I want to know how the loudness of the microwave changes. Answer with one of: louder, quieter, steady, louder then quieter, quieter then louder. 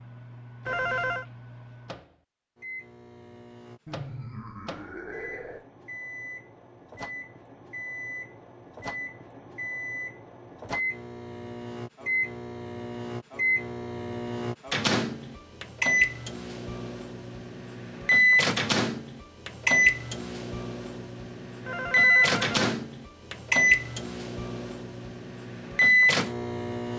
louder.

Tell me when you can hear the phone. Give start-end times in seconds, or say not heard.
0.7-1.2, 21.6-22.8.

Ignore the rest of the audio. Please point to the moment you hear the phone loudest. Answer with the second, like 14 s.
1 s.